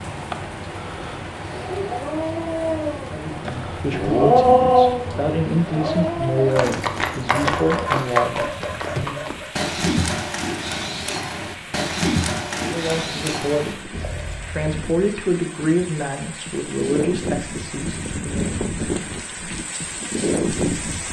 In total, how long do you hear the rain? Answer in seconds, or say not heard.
21 s.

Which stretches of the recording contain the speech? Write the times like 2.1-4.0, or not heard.
3.1-9.2, 12.6-18.6.